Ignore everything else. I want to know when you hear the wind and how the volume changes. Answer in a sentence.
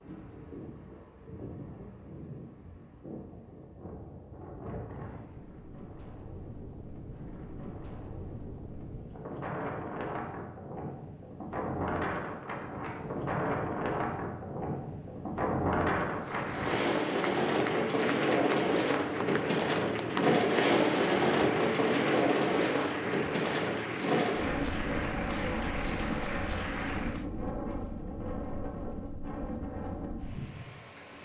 You can hear the wind from 0.0 to 31.1 s, getting louder then quieter.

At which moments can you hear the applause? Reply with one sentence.
The applause can be heard from 16.2 to 27.2 s.